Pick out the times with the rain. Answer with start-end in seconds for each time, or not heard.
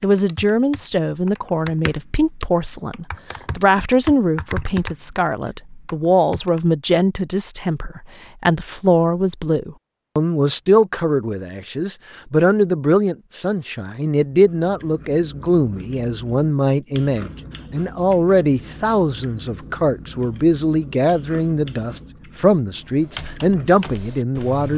not heard.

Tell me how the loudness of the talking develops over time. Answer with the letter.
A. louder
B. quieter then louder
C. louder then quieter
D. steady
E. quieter
D.